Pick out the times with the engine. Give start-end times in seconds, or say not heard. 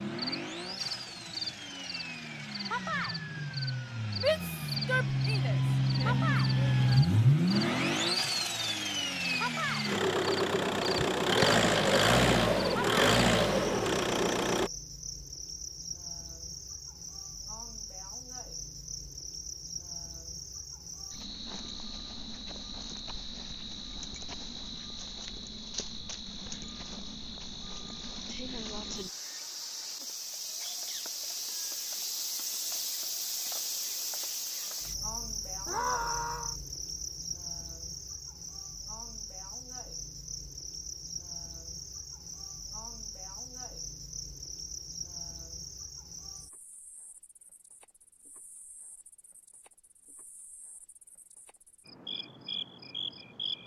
0.0-14.7.